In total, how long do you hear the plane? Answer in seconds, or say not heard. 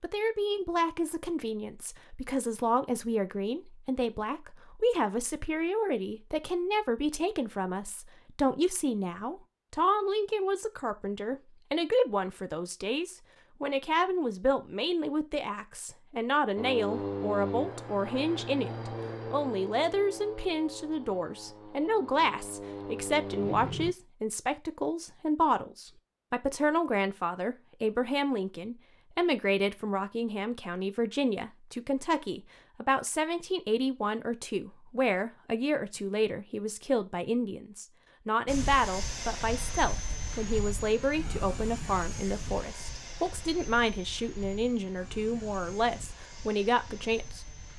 17 s.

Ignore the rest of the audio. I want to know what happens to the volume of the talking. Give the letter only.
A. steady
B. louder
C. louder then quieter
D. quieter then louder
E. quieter
A.